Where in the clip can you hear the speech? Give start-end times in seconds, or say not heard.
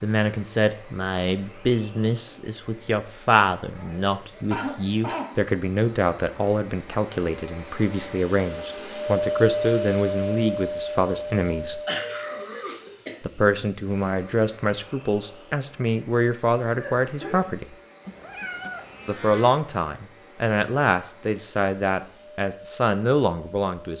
0.0-11.8, 13.2-17.7, 19.1-23.9.